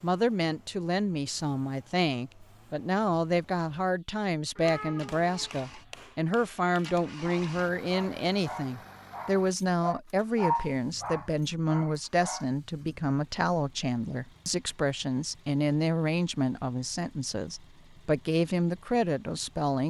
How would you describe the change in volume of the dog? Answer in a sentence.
The loudness of the dog goes up, then down.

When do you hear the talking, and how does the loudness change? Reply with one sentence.
You can hear the talking from 0.0 to 19.8 s, at a steady volume.